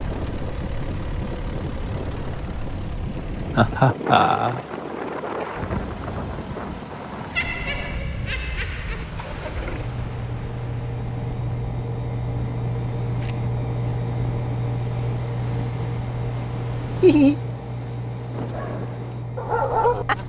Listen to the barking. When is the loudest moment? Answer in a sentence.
The loudest moment of the barking is at 20 seconds.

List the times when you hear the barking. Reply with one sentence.
You can hear the barking from 18.5 to 20.2 s.